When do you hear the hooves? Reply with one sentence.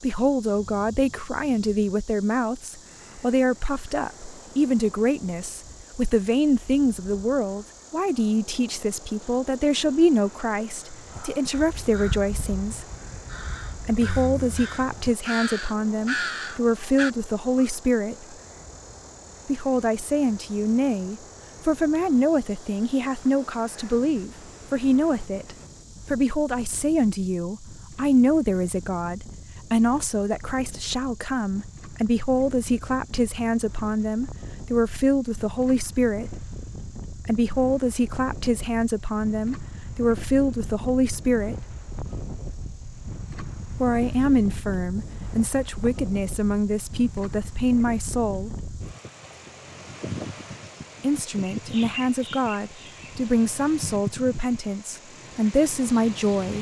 The hooves can't be heard in this clip.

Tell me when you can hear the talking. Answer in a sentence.
The talking can be heard from 0.0 to 12.8 s, from 13.8 to 18.4 s, from 19.4 to 36.5 s, from 37.2 to 41.8 s, from 43.8 to 48.5 s and from 51.0 to 56.5 s.